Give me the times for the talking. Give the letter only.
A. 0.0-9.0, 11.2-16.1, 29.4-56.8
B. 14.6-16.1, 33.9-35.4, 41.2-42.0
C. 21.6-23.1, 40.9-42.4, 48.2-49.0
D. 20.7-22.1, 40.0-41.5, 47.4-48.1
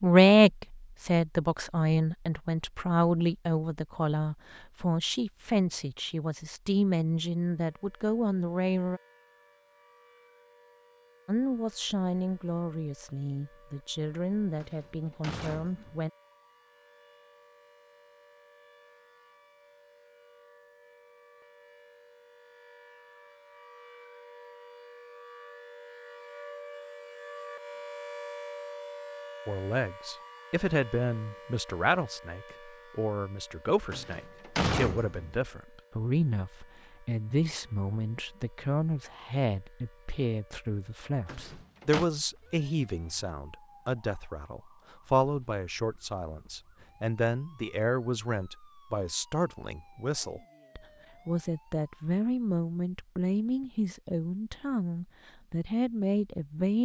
A.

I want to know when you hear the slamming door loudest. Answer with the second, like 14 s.
35 s.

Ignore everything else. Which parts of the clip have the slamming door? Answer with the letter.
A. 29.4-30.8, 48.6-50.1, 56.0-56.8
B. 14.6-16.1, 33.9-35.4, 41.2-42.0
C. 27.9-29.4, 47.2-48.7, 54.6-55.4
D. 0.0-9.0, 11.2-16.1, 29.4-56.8
B.